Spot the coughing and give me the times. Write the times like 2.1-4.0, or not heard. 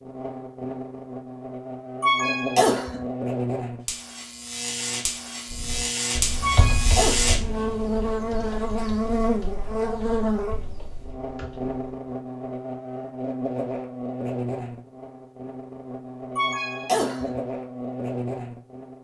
2.0-3.0, 6.4-7.2, 16.4-17.4.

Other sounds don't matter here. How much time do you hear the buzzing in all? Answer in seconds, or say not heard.
19 s.